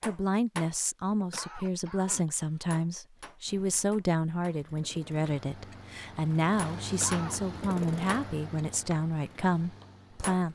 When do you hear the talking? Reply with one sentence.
The talking can be heard from 0.1 to 10.4 s.